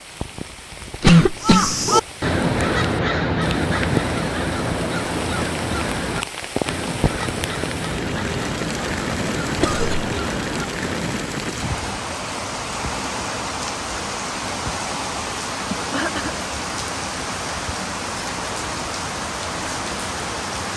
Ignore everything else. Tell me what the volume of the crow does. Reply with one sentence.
The volume of the crow goes down.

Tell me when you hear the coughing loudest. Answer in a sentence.
The volume of the coughing peaks at 1 second.